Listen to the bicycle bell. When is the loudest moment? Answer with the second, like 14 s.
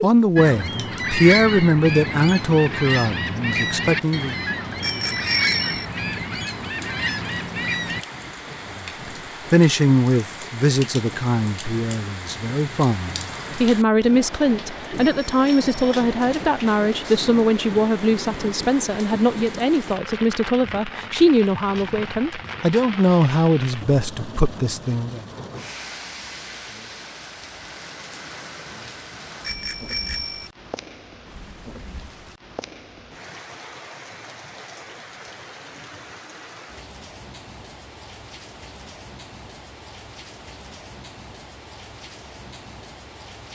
5 s.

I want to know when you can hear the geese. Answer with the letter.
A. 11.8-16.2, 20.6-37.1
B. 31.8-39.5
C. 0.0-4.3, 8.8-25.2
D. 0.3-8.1
D.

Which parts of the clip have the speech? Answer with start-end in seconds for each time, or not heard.
0.0-4.3, 8.8-25.2.